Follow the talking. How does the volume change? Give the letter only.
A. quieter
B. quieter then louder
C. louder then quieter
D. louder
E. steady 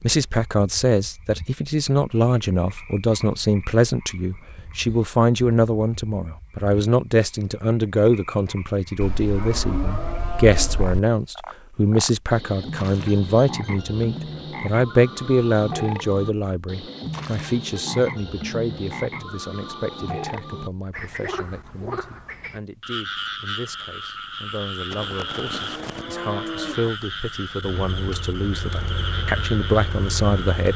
B.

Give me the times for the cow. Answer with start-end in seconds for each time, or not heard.
9.0-11.0, 24.9-26.9.